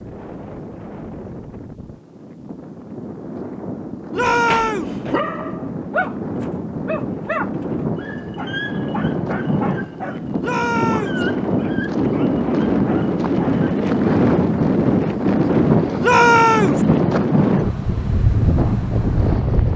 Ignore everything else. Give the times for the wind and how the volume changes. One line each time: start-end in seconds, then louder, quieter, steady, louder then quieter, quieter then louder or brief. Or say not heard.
0.0-19.7 louder.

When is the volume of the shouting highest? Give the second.
16 s.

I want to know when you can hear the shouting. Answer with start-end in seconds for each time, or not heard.
4.1-4.9, 10.4-11.2, 16.0-16.8.